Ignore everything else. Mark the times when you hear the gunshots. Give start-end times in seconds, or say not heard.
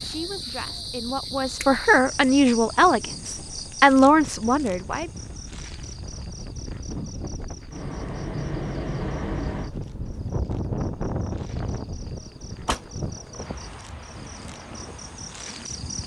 12.7-13.8.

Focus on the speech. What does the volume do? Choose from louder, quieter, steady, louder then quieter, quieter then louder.
louder.